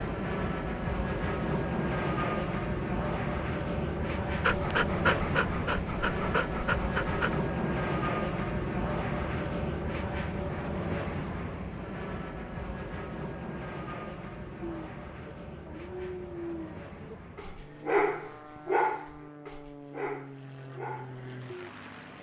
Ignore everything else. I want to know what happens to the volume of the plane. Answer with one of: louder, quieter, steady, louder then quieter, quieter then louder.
quieter.